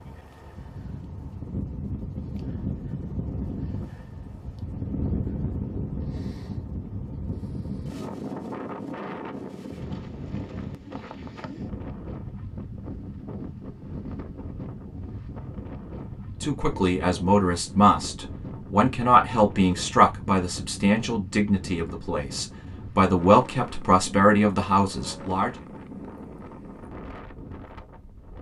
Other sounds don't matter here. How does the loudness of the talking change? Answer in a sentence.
The loudness of the talking stays about the same.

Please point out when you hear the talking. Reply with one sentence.
The talking can be heard from 16.0 to 25.5 s.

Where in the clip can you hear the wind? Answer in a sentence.
You can hear the wind from 0.0 to 28.3 s.